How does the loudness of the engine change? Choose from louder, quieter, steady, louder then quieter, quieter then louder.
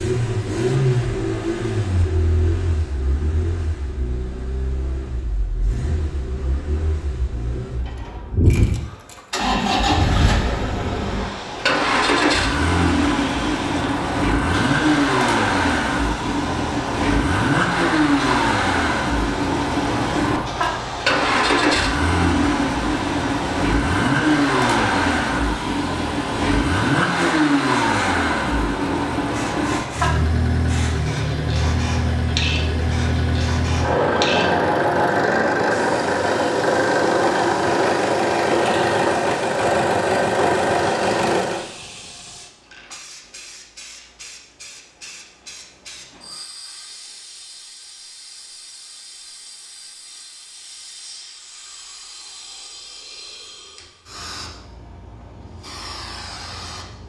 louder.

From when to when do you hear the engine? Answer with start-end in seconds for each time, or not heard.
0.0-41.6.